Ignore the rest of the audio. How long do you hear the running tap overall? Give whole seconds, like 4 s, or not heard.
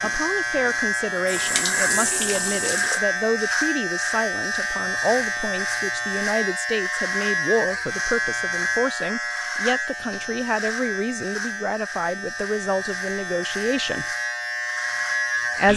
3 s.